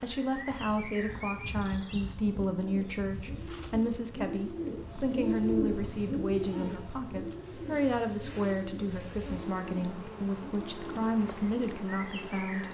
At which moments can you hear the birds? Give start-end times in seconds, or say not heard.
0.0-12.6.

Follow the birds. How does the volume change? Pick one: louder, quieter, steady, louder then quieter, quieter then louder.
louder then quieter.